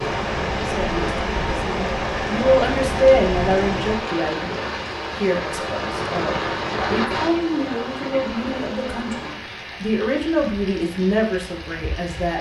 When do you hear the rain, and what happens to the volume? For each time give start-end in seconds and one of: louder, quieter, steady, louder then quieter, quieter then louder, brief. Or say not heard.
0.0-12.3 quieter.